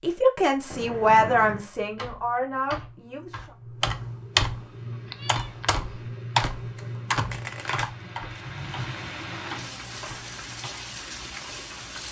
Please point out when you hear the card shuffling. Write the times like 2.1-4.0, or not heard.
7.3-8.4.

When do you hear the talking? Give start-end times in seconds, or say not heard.
0.0-3.5.